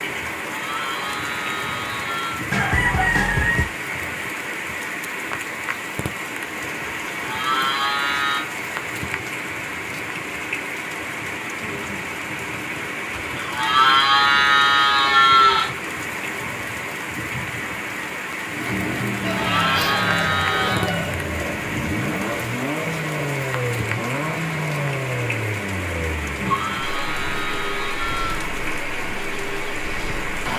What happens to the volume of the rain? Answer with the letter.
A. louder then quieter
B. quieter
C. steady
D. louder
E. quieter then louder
C.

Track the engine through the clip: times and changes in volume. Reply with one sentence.
The engine can be heard from 18.4 to 30.5 s, getting quieter.